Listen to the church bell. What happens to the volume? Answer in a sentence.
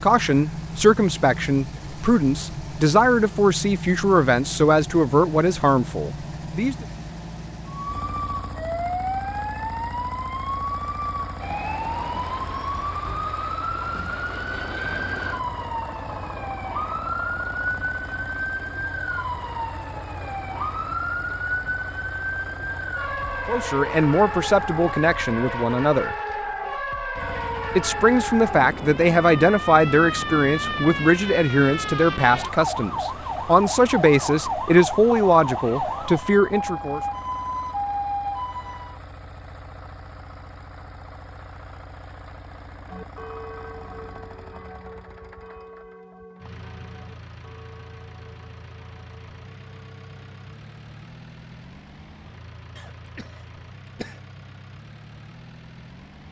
The volume of the church bell goes down.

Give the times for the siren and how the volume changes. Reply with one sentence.
The siren can be heard from 7.7 to 39.0 s, at a steady volume.